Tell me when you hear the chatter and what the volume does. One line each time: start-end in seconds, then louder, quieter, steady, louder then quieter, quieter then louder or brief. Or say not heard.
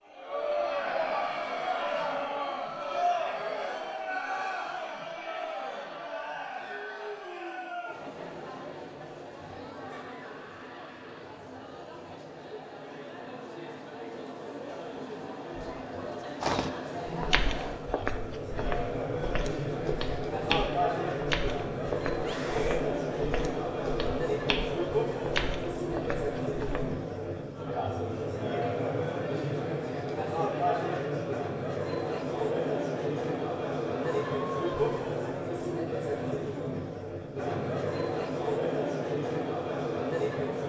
0.1-40.6 quieter then louder.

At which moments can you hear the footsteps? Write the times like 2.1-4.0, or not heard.
16.4-26.9.